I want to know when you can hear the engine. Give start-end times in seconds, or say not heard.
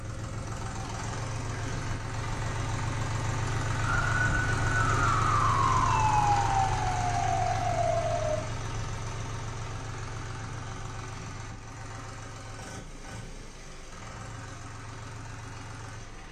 0.0-16.2.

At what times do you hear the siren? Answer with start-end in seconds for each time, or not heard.
3.8-8.4.